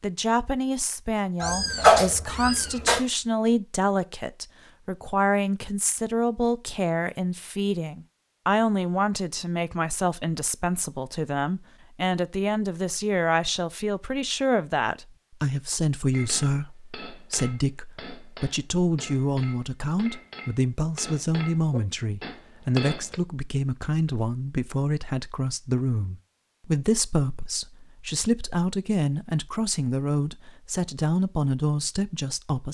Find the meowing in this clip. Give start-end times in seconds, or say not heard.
1.4-3.0.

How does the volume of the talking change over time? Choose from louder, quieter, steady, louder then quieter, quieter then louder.
steady.